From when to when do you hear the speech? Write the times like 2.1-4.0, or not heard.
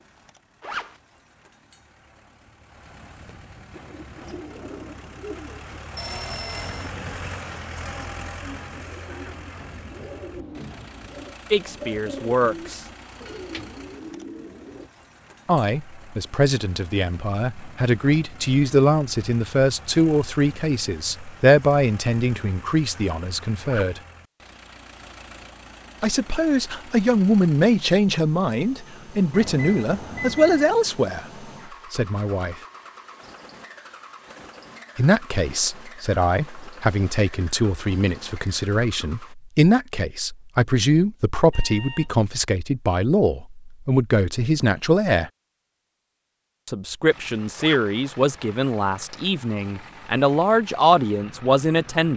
11.5-12.8, 15.4-24.0, 26.0-31.2, 31.9-32.5, 35.0-45.3, 46.6-52.1.